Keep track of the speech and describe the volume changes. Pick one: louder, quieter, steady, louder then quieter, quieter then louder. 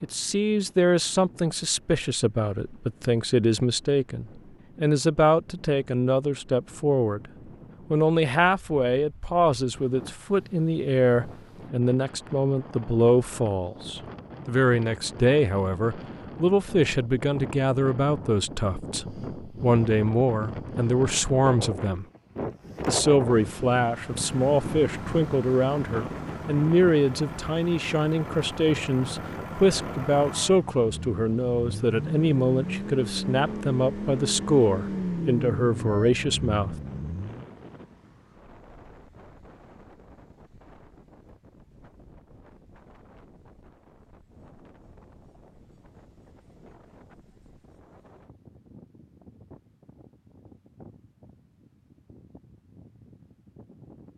steady.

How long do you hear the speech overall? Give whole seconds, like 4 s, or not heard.
35 s.